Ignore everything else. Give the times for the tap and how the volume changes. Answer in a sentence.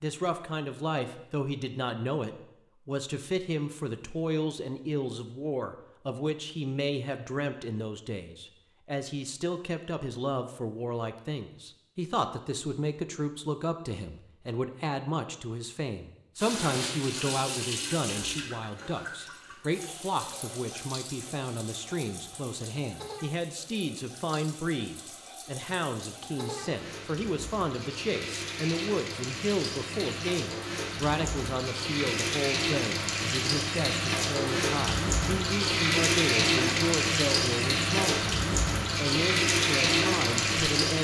The tap can be heard from 16.4 to 40.9 s, getting quieter then louder.